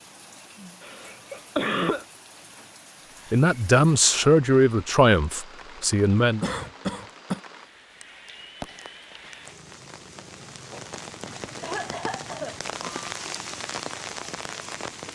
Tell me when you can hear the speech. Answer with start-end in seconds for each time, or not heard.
3.3-6.5.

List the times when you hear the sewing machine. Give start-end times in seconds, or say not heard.
not heard.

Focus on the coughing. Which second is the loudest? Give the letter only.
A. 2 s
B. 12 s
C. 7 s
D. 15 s
A.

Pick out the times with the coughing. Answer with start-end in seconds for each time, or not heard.
0.8-2.0, 6.4-7.4, 10.5-12.6.